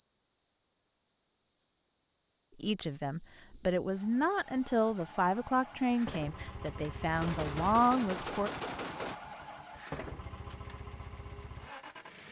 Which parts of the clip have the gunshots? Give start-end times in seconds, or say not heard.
7.2-9.2.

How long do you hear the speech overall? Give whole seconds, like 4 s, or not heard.
6 s.